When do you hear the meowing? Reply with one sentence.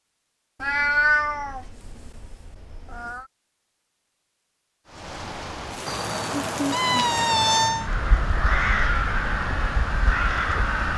The meowing can be heard from 0.6 to 3.2 s and from 5.8 to 7.9 s.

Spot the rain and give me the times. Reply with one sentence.
The rain can be heard from 4.8 to 10.9 s.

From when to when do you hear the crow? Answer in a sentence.
You can hear the crow from 7.8 to 10.9 s.